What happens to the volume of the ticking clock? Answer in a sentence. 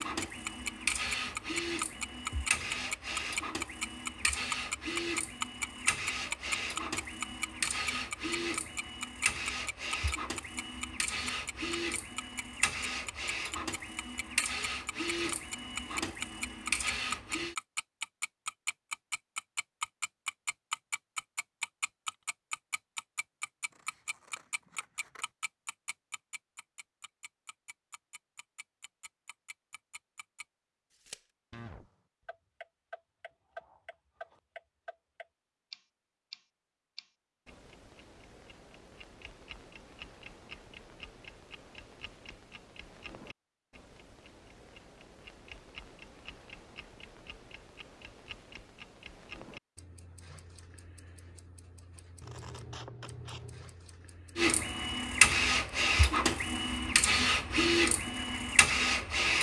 The loudness of the ticking clock goes down.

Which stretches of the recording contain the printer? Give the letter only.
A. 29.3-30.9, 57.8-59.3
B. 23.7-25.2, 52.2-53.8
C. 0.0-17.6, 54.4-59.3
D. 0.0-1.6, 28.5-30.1
C.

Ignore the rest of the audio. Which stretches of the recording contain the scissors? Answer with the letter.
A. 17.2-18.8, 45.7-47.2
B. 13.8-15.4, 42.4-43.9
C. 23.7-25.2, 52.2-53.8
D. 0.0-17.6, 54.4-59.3
C.